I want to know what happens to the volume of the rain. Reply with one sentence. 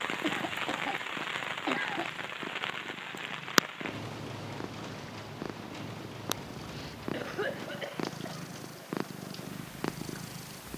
The loudness of the rain goes down.